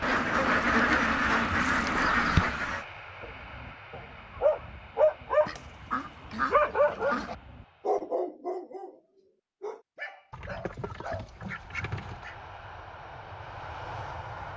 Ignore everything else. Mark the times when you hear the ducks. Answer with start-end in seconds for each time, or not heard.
0.0-2.9, 5.5-7.3, 10.3-12.3.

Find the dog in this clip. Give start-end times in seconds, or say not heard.
3.2-9.0, 9.6-11.2.